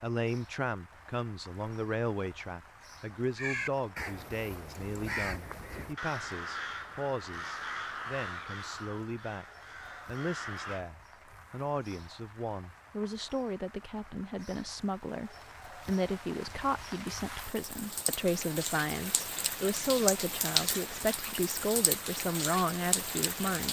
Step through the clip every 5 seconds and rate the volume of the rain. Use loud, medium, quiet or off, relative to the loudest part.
quiet, quiet, quiet, medium, loud.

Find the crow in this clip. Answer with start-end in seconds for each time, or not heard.
3.4-10.8.